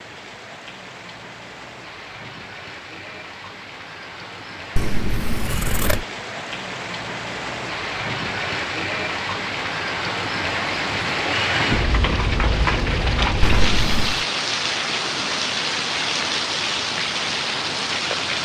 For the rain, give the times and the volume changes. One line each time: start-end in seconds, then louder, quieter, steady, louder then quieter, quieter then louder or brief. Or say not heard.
0.0-18.4 louder.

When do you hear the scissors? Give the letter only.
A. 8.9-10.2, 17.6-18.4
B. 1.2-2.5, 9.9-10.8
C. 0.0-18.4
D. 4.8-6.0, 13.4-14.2
D.